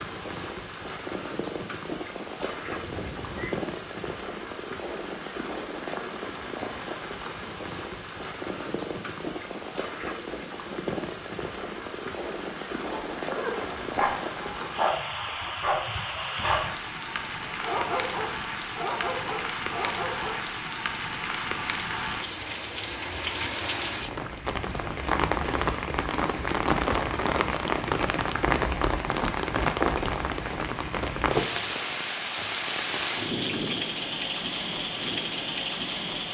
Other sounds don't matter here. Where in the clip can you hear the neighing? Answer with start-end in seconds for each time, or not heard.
2.5-3.5.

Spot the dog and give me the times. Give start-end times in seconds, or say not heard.
12.9-20.4.